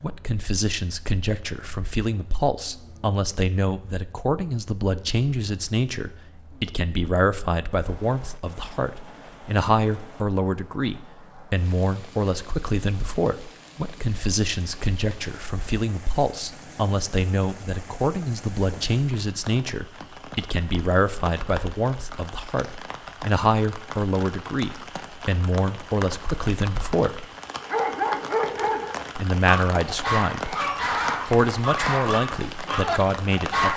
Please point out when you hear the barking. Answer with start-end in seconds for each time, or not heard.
27.6-33.7.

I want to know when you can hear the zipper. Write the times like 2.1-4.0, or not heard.
not heard.